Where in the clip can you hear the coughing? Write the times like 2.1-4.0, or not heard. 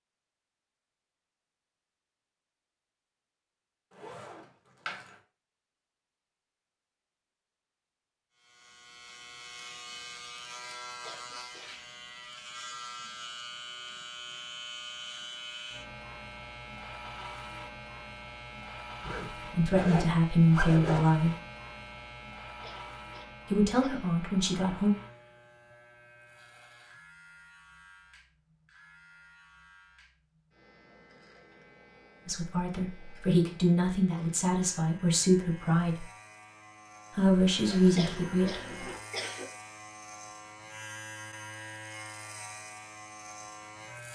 11.0-11.8, 22.6-24.1, 38.0-39.5.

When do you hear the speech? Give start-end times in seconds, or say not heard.
19.5-21.4, 23.5-24.9, 32.2-36.0, 37.1-38.6.